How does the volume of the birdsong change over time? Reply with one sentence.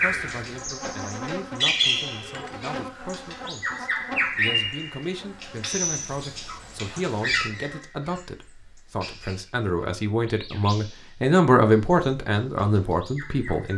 The loudness of the birdsong goes down.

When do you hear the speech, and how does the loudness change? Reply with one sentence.
The speech can be heard from 0.0 to 13.7 s, getting louder.